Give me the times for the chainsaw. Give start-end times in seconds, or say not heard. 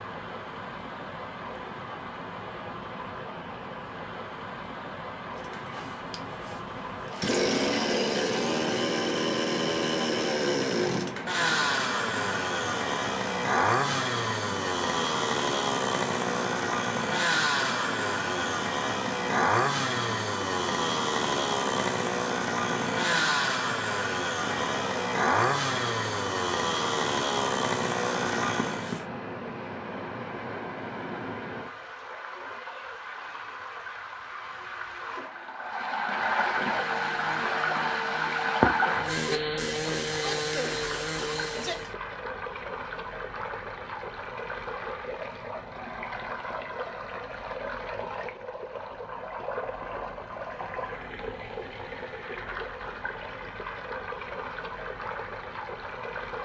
5.3-29.1, 36.5-42.0.